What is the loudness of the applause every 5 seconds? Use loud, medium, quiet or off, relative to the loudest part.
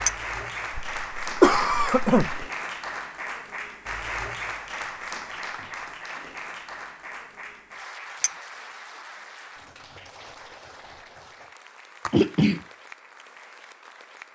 loud, medium, quiet.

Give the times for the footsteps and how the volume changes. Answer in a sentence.
You can't hear the footsteps here.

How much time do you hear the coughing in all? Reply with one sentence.
The coughing can be heard for 2 seconds in total.